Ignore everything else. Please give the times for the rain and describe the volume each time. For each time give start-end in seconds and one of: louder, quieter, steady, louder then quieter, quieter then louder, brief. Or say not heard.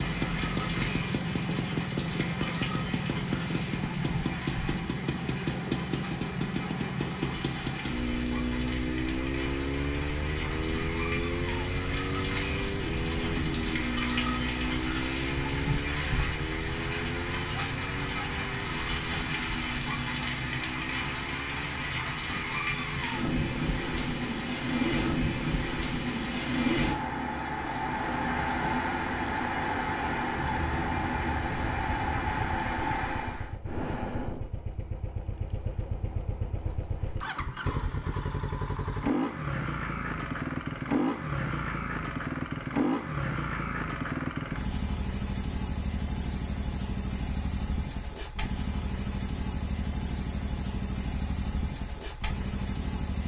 0.0-33.5 louder.